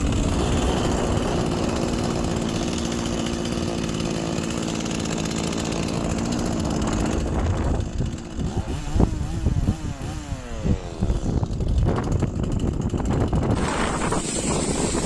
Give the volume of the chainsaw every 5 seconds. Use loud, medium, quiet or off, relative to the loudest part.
loud, loud, medium.